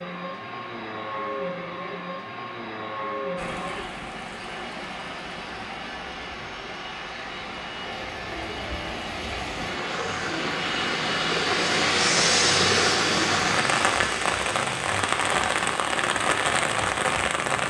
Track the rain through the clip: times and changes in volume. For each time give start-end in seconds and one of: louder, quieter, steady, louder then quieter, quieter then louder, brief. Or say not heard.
3.4-17.6 louder.